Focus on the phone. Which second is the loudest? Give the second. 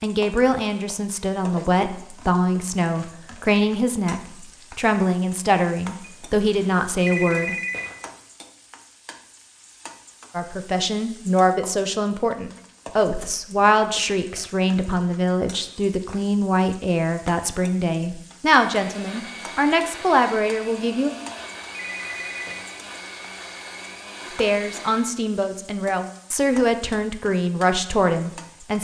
7 s.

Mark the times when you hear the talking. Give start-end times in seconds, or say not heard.
0.0-7.5, 10.3-21.1, 24.4-28.7.